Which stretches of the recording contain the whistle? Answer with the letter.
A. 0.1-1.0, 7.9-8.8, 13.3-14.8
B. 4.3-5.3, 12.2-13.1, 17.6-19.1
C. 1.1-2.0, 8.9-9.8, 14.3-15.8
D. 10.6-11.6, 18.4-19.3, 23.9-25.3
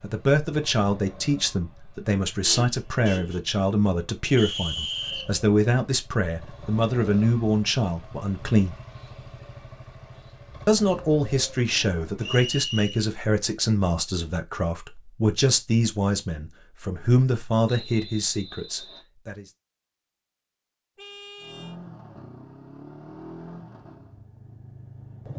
B.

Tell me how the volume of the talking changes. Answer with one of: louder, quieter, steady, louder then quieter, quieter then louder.
steady.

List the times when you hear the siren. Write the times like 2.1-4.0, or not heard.
not heard.